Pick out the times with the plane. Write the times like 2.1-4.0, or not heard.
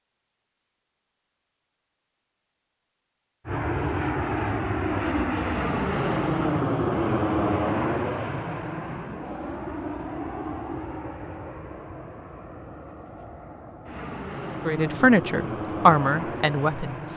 3.5-17.1.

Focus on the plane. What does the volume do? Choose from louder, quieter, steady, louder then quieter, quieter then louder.
quieter then louder.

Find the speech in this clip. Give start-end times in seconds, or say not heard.
14.7-17.1.